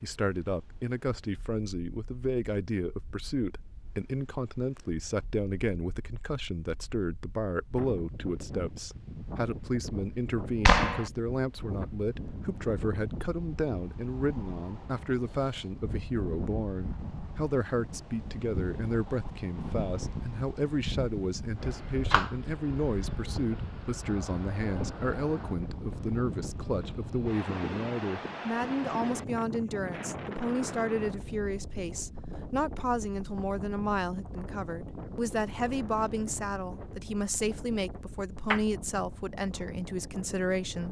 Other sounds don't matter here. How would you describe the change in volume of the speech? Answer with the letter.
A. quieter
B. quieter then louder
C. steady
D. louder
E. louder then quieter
C.